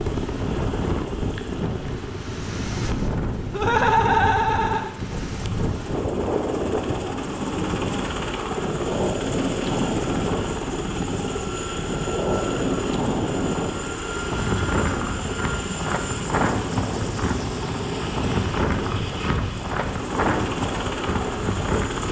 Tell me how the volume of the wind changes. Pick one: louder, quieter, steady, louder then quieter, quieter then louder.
steady.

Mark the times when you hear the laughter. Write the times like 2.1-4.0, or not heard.
3.5-4.9.